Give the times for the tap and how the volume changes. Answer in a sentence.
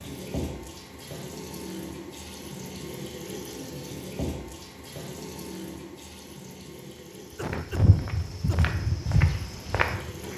You can hear the tap from 0.0 to 10.3 s, getting quieter.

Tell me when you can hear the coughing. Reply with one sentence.
You can hear the coughing from 7.3 to 8.8 s.